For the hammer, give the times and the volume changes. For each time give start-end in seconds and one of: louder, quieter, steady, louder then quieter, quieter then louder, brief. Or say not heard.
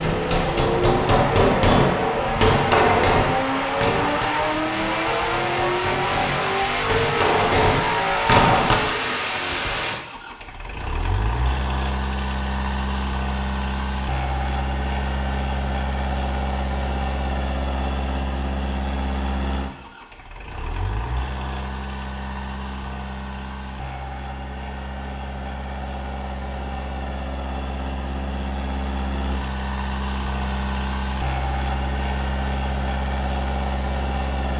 0.0-8.8 quieter then louder.